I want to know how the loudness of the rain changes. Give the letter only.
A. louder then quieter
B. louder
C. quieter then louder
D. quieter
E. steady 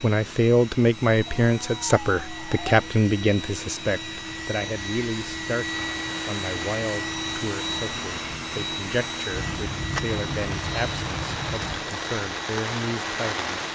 B.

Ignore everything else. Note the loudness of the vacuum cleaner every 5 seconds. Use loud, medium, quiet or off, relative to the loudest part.
medium, loud, medium.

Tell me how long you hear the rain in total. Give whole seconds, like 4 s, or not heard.
8 s.